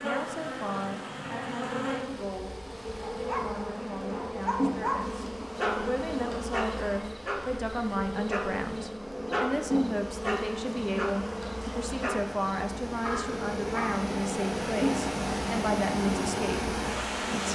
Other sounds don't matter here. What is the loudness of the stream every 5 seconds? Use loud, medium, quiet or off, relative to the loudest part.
quiet, quiet, medium, loud.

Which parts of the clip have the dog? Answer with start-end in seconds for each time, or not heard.
2.9-14.0.